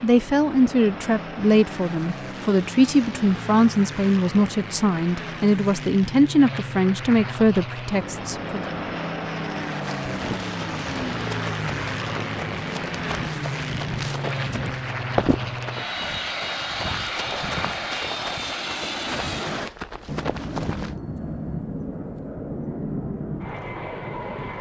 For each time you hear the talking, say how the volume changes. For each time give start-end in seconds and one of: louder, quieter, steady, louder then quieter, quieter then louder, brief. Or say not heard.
0.0-8.7 steady.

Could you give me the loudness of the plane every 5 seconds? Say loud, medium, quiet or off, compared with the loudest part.
medium, loud, loud, loud, loud.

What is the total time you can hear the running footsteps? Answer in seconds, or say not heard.
11 s.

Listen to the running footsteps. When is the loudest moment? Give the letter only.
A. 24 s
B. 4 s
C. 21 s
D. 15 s
D.